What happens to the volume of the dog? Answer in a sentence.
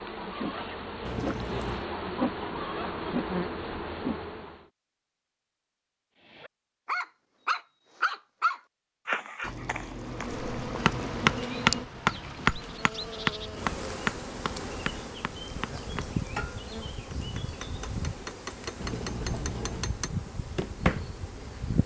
The volume of the dog goes down.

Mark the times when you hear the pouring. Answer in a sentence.
You can hear the pouring from 1.1 to 1.9 s, from 9.4 to 11.4 s and from 18.8 to 20.0 s.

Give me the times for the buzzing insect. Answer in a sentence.
The buzzing insect can be heard from 0.0 to 4.7 s and from 9.8 to 21.8 s.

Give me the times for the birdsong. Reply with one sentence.
The birdsong can't be heard in this clip.